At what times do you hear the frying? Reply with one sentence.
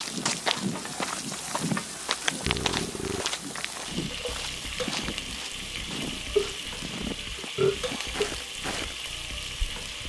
You can hear the frying from 0.0 to 10.0 s.